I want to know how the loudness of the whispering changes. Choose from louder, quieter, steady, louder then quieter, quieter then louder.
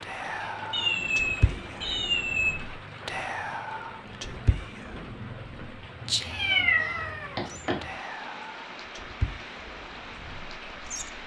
quieter.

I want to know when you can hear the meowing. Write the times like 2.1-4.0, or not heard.
0.7-2.5, 6.3-7.8.